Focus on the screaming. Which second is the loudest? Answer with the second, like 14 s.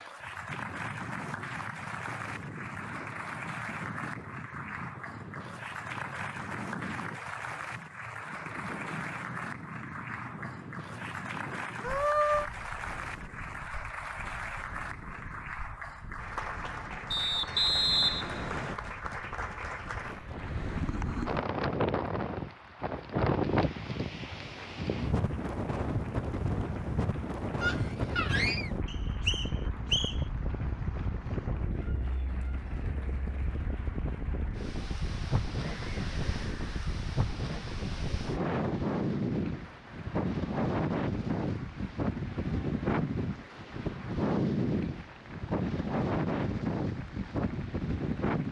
12 s.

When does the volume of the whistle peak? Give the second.
18 s.